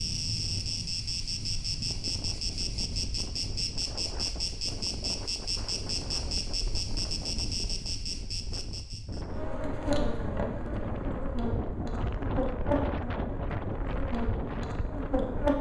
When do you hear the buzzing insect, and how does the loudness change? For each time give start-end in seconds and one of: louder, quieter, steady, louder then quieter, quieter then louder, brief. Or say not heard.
0.0-15.5 steady.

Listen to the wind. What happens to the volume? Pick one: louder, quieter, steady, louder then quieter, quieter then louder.
louder.